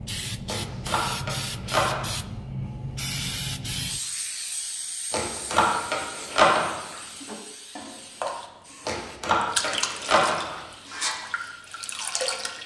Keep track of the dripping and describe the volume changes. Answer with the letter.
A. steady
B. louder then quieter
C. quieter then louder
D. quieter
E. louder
B.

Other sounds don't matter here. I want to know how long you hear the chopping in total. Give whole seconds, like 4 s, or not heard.
5 s.